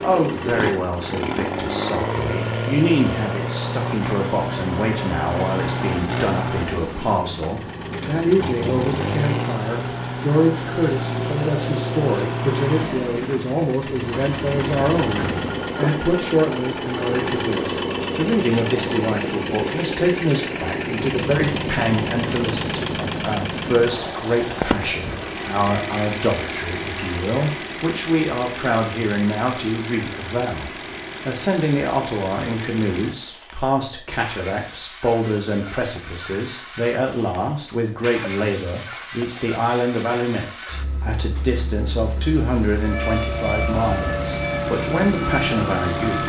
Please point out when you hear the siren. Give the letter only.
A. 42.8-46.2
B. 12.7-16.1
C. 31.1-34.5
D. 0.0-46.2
A.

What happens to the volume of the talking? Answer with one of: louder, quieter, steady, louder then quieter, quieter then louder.
steady.